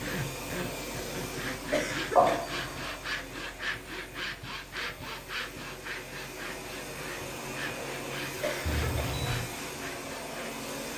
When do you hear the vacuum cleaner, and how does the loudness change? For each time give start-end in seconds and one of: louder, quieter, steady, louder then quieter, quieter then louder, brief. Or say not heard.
0.0-10.9 quieter then louder.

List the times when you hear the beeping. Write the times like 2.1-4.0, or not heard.
2.1-3.0, 8.7-9.4.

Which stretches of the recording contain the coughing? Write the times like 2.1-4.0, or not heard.
1.7-2.4, 8.4-9.1.